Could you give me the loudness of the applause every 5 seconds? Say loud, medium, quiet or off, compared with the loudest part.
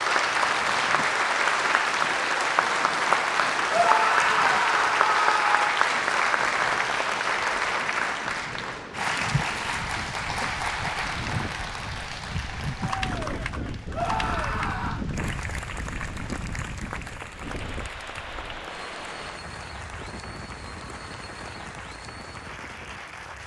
loud, loud, medium, quiet, quiet.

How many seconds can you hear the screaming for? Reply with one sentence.
The screaming can be heard for 3 seconds in total.